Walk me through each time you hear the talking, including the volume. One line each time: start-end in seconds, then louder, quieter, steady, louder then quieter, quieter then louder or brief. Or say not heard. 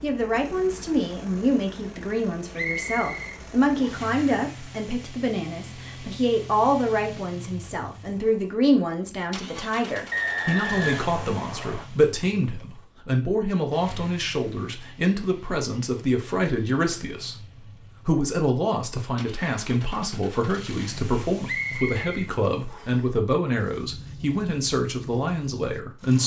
0.0-26.2 steady.